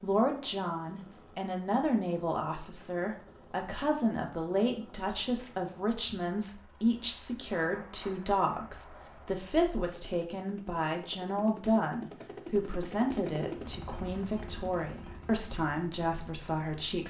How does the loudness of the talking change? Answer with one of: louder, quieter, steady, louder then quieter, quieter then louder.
steady.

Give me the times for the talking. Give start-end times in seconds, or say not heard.
0.0-17.0.